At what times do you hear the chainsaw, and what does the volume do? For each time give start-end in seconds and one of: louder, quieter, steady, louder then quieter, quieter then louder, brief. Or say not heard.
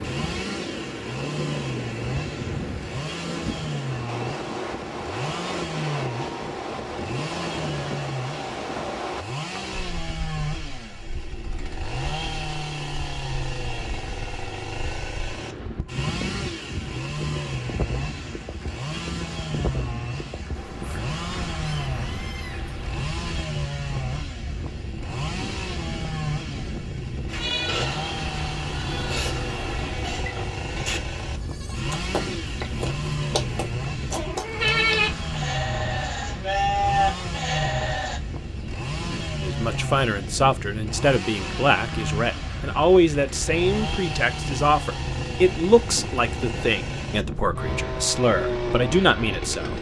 0.0-49.7 steady.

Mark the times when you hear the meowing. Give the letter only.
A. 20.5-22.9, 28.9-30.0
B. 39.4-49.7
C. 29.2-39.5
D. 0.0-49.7
A.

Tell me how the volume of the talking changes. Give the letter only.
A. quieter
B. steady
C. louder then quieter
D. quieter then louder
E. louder
B.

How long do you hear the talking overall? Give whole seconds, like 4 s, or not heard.
10 s.